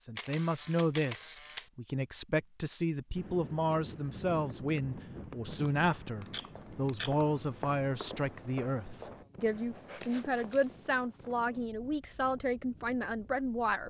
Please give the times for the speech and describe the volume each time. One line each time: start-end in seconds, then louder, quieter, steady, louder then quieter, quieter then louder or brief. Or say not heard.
0.0-13.8 steady.